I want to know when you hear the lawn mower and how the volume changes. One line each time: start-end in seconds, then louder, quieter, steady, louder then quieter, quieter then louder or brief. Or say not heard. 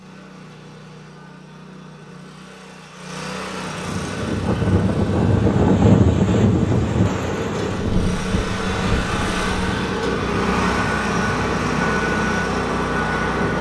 0.0-13.5 louder.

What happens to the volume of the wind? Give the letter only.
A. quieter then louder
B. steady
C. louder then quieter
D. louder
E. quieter
E.